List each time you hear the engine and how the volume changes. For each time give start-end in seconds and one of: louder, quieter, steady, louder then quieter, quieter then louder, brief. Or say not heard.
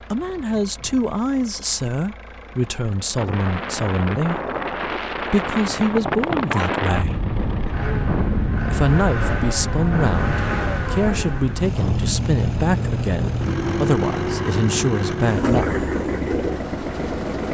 0.0-17.4 louder.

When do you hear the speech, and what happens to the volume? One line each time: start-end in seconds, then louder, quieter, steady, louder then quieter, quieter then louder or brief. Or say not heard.
0.1-7.2 steady
8.7-15.8 steady.